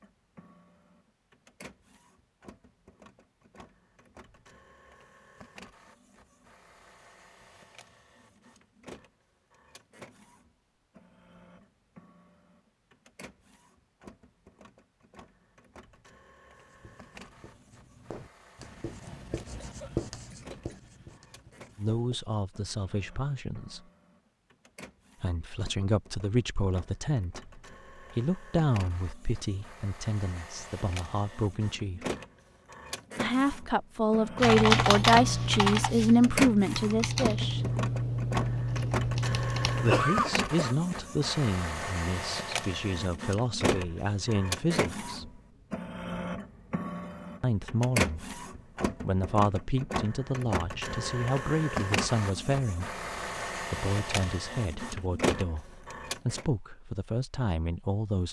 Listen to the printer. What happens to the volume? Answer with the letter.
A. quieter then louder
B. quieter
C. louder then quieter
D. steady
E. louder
E.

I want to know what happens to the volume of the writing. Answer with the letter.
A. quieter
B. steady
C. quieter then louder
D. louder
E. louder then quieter
E.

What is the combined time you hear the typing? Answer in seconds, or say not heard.
6 s.